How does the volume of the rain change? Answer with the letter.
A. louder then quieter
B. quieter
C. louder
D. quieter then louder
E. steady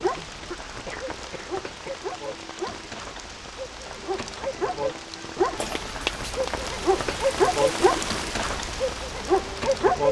C.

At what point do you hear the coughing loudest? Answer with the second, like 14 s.
6 s.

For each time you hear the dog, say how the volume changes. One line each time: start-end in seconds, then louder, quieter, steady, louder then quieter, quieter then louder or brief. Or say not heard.
0.0-10.0 louder.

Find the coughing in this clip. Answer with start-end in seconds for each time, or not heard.
0.5-2.0, 5.5-6.5.